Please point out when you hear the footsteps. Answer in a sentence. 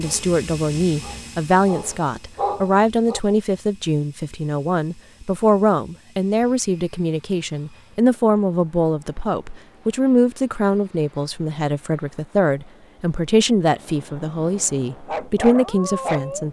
The footsteps can't be heard in this clip.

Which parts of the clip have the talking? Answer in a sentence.
The talking can be heard from 0.0 to 16.4 s.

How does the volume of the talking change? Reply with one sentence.
The loudness of the talking stays about the same.